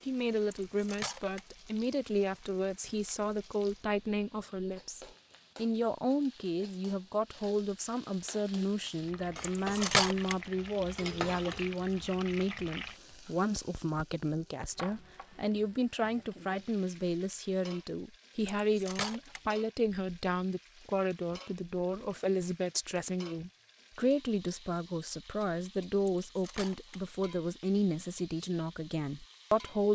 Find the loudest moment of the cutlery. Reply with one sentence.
The loudest moment of the cutlery is at 10 seconds.